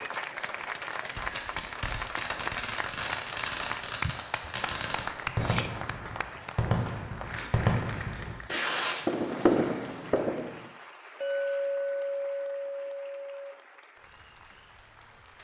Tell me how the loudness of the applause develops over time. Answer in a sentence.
The volume of the applause goes down.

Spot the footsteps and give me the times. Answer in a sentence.
The footsteps can't be heard in this clip.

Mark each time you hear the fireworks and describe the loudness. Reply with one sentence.
The fireworks can be heard from 1.1 to 10.6 s, getting louder.